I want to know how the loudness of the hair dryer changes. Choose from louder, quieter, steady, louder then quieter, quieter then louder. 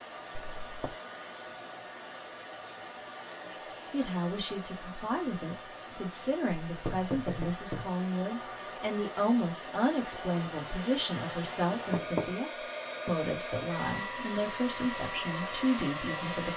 louder.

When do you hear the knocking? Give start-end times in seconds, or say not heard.
0.3-0.9, 6.7-7.9, 11.7-12.4.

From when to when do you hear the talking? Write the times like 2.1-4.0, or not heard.
3.9-16.5.